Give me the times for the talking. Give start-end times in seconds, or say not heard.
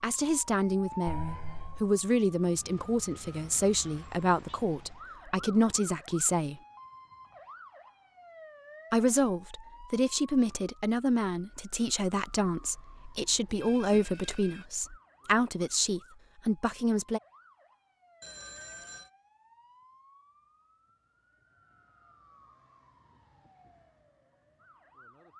0.0-6.6, 8.9-17.2.